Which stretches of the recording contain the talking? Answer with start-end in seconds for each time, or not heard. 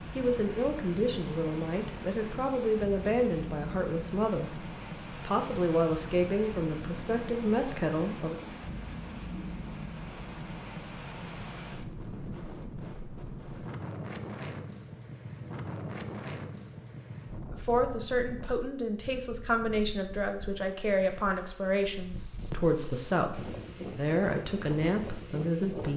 0.1-8.3, 17.6-25.9.